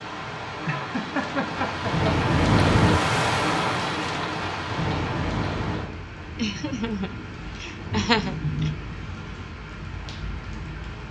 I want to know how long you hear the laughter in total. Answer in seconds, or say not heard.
4 s.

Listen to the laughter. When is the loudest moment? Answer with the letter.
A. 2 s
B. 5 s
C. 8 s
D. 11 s
C.